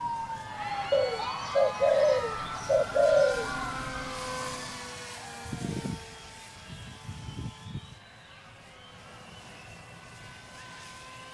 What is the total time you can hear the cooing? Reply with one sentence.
The cooing can be heard for 3 seconds in total.